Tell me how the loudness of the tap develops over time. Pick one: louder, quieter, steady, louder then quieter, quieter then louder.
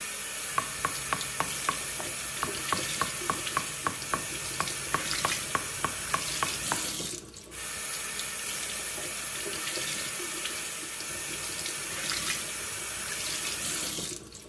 steady.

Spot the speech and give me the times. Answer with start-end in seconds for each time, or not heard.
not heard.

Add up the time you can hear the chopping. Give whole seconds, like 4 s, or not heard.
6 s.